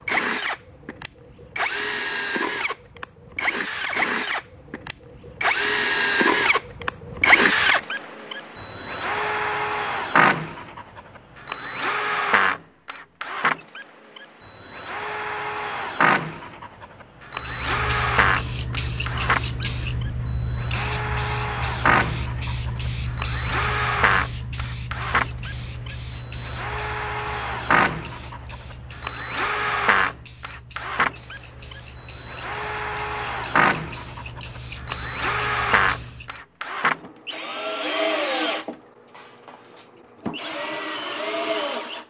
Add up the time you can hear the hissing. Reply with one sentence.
You can hear the hissing for 19 seconds altogether.